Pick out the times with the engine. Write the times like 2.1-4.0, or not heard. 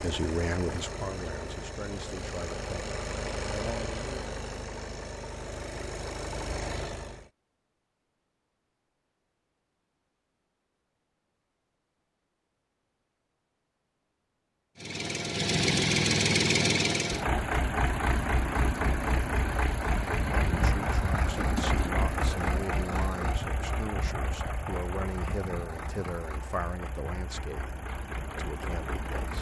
0.0-7.3, 14.8-29.3.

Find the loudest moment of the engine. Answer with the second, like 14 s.
16 s.